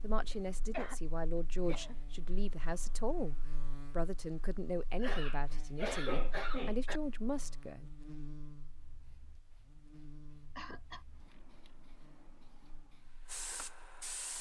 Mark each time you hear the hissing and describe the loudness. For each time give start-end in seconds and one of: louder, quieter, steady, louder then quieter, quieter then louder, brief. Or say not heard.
8.7-14.3 louder.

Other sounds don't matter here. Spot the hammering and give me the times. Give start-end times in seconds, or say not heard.
not heard.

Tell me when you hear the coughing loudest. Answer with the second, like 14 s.
6 s.